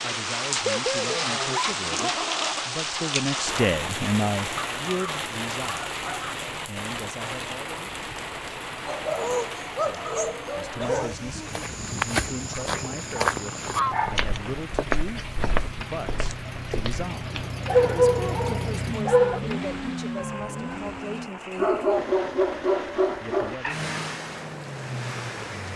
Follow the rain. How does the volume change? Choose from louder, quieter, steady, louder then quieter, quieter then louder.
quieter.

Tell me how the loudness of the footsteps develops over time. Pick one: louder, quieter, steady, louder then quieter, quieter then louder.
quieter.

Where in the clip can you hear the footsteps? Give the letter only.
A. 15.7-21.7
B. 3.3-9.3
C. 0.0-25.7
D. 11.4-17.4
D.